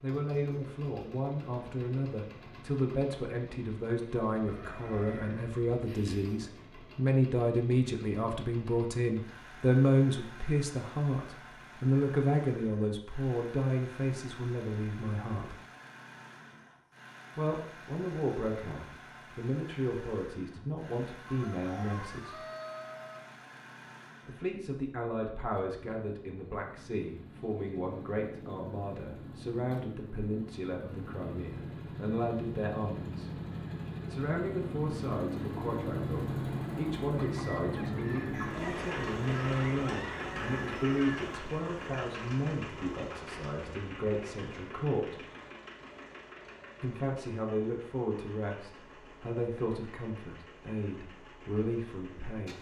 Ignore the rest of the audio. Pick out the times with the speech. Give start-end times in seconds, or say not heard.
0.0-15.6, 17.4-22.4, 24.2-33.3, 34.1-45.2, 46.8-52.5.